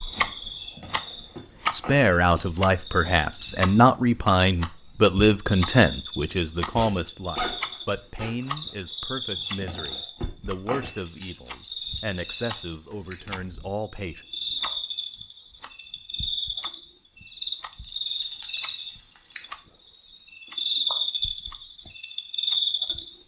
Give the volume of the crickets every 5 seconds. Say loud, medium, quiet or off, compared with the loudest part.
quiet, medium, medium, medium, loud.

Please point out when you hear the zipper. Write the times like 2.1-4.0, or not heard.
6.7-8.4.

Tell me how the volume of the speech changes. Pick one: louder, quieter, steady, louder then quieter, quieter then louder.
quieter.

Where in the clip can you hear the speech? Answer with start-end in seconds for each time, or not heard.
1.7-14.2.